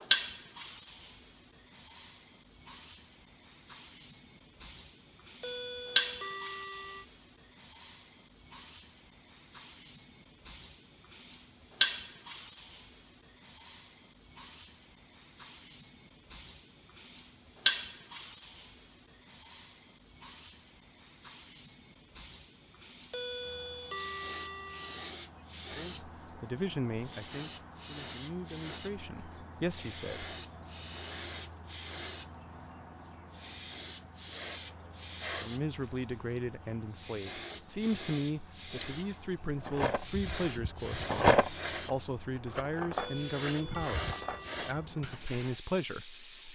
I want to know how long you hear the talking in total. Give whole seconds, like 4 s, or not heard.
16 s.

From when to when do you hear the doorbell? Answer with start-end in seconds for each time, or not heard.
5.4-7.0, 23.1-25.1, 43.0-44.6.